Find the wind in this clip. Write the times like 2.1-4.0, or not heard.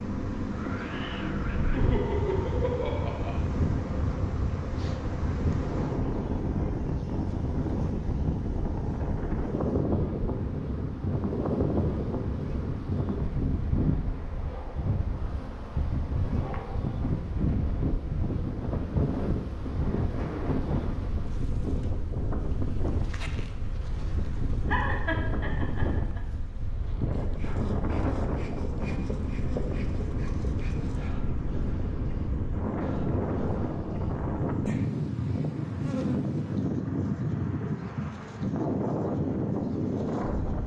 0.0-40.6.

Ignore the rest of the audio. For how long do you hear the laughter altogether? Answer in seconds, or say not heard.
3 s.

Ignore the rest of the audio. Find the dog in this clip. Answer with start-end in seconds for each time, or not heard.
not heard.